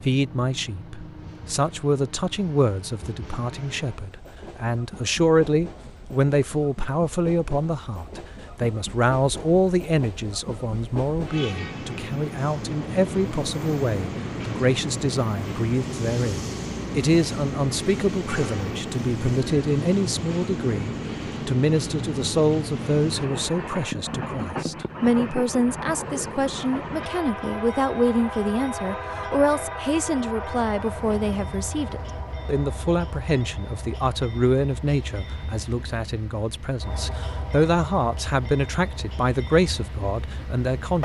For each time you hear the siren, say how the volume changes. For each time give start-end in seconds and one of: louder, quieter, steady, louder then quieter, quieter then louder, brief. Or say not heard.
not heard.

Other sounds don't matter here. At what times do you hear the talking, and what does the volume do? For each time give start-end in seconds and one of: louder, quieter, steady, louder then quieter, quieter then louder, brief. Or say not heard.
0.0-41.0 steady.